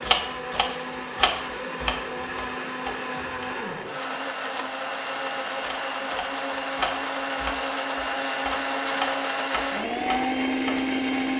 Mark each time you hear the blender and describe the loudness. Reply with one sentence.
You can hear the blender from 0.0 to 11.3 s, getting louder.